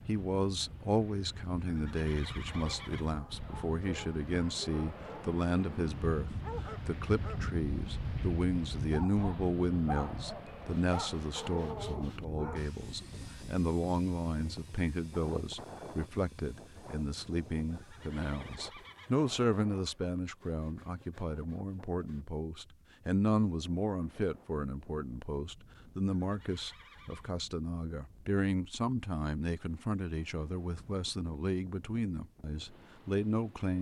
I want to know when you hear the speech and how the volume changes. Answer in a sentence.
The speech can be heard from 0.1 to 33.7 s, at a steady volume.